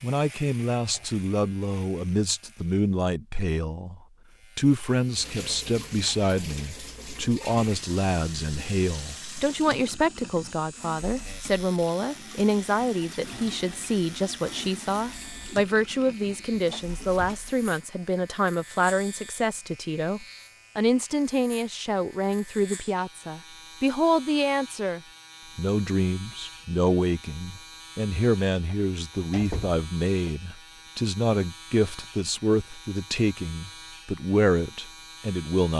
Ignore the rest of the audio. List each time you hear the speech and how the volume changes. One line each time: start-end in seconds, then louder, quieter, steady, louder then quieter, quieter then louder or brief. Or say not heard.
0.0-35.7 steady.